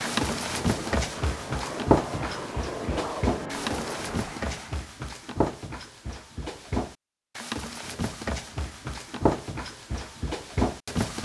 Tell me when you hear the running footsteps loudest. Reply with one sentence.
The loudest moment of the running footsteps is at 2 seconds.